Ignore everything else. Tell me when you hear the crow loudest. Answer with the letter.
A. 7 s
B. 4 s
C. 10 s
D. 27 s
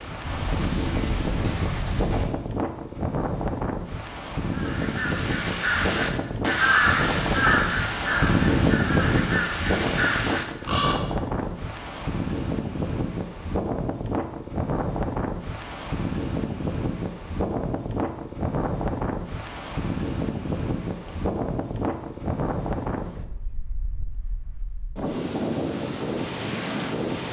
A.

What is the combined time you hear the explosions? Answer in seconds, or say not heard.
2 s.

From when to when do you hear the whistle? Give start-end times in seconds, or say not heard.
not heard.